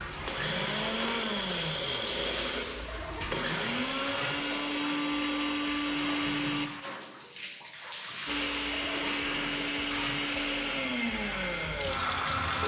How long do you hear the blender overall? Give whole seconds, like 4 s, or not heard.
11 s.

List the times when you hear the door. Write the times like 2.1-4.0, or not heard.
not heard.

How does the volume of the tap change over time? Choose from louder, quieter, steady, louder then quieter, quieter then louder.
steady.